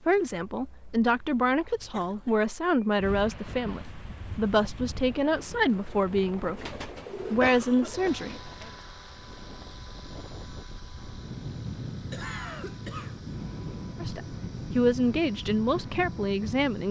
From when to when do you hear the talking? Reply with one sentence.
The talking can be heard from 0.1 to 8.5 s and from 14.0 to 16.8 s.